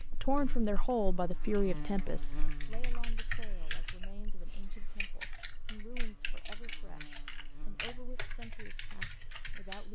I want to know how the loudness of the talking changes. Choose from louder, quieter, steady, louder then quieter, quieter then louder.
quieter.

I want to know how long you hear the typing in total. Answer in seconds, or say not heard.
10 s.